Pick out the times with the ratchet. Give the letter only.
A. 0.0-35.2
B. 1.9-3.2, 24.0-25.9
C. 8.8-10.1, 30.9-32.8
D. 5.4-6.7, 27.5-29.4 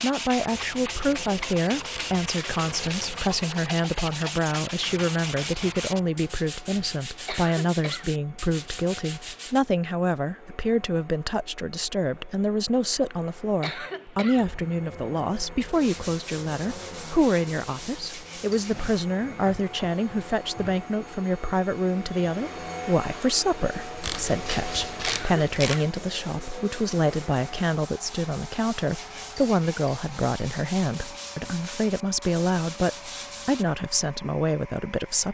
B.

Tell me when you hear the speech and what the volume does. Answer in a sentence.
You can hear the speech from 0.0 to 35.2 s, at a steady volume.